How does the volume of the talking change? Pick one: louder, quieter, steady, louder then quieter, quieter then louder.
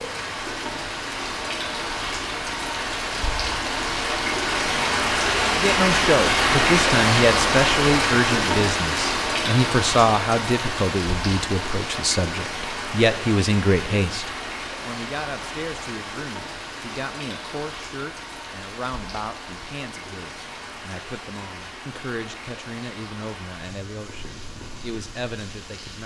quieter.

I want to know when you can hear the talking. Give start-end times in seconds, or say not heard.
5.4-26.0.